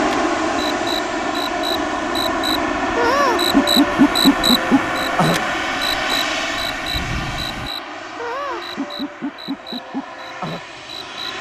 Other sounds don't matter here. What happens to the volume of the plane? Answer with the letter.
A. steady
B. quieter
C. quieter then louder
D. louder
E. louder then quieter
B.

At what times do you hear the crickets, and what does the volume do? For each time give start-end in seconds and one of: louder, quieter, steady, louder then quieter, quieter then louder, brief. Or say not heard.
0.0-11.3 louder then quieter.